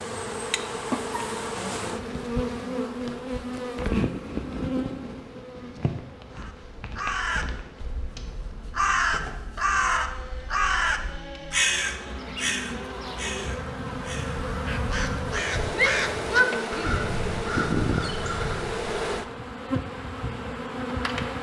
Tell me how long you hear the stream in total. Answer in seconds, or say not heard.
not heard.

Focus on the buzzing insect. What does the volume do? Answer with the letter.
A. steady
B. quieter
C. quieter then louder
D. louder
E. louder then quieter
C.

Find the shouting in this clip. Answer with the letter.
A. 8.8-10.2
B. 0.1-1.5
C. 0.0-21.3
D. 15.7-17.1
D.